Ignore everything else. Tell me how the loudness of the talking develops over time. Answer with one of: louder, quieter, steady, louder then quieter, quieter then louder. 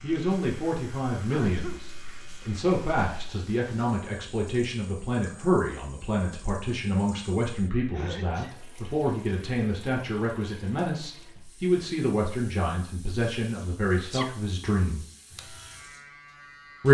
steady.